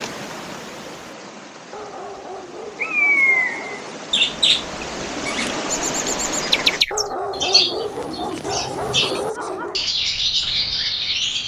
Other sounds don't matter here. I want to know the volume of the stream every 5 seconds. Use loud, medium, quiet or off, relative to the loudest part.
medium, loud, off.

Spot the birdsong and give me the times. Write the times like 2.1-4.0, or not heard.
2.8-11.4.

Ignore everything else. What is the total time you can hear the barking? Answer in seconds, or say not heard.
5 s.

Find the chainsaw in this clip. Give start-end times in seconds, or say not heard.
not heard.